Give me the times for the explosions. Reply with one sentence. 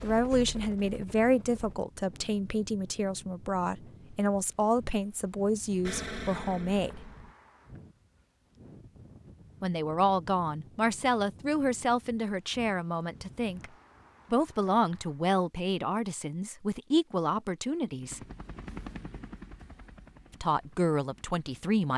You can hear the explosions from 5.8 to 7.3 s.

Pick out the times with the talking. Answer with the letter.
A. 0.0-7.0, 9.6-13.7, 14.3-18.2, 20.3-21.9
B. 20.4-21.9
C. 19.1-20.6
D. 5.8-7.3
A.